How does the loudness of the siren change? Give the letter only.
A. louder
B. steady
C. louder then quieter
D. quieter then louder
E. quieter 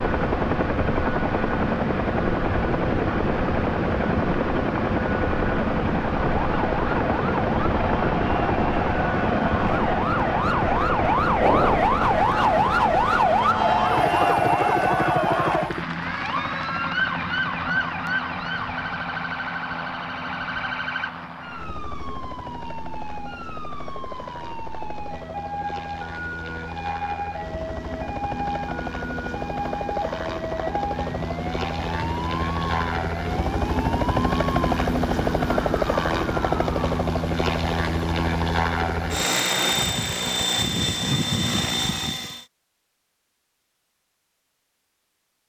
E.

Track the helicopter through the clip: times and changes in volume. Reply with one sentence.
You can hear the helicopter from 0.0 to 42.5 s, getting quieter then louder.